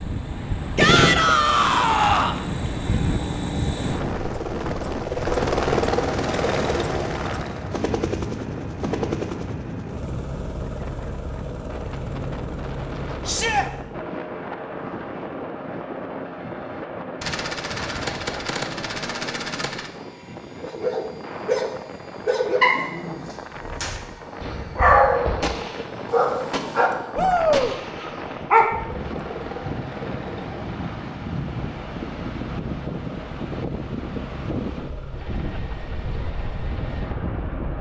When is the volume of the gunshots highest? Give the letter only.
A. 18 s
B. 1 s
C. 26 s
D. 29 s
B.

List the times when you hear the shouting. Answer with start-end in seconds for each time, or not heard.
0.8-2.4, 13.2-13.7, 27.1-27.8.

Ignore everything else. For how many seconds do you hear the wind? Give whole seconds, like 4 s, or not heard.
38 s.